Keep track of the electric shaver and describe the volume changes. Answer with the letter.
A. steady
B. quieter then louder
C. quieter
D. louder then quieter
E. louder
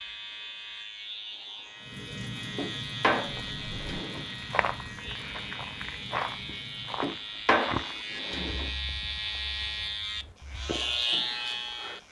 E.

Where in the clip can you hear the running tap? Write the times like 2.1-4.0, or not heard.
1.8-7.2.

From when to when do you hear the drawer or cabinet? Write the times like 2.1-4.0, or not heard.
2.5-4.2, 7.0-8.7.